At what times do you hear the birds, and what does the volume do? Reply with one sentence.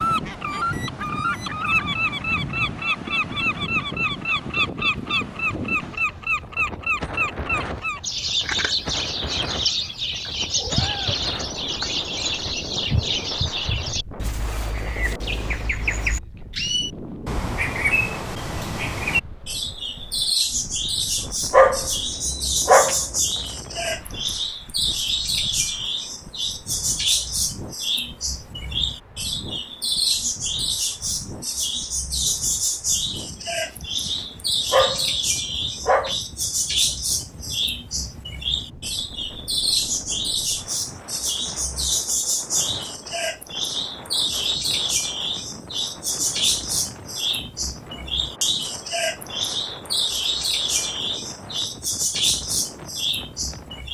You can hear the birds from 0.0 to 53.8 s, at a steady volume.